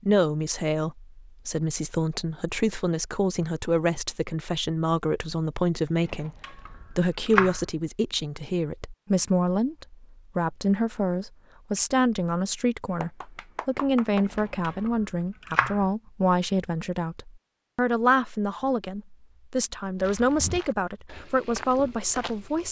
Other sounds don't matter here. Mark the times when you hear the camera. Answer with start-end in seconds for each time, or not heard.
6.0-7.7, 14.2-15.8.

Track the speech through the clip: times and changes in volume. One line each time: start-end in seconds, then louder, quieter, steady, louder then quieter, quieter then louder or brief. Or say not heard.
0.0-22.6 steady.